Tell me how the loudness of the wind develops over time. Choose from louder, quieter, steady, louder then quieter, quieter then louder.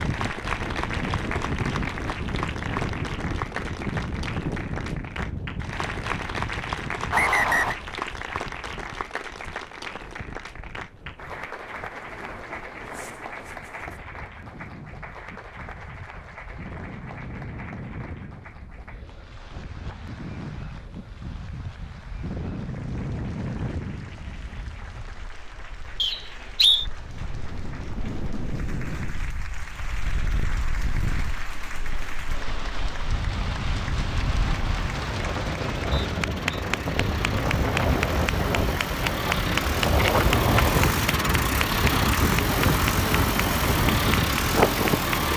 quieter then louder.